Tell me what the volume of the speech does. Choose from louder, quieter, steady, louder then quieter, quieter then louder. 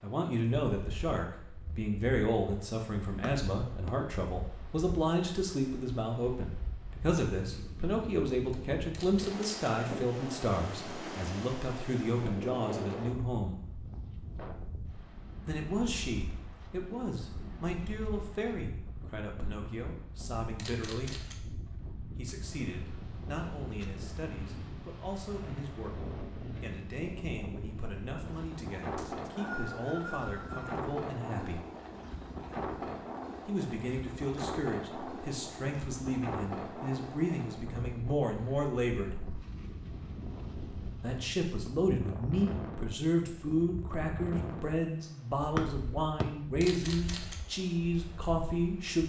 quieter then louder.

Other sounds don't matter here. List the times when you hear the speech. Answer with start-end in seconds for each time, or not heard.
0.0-13.6, 15.4-21.1, 22.1-31.6, 33.5-39.1, 40.9-49.0.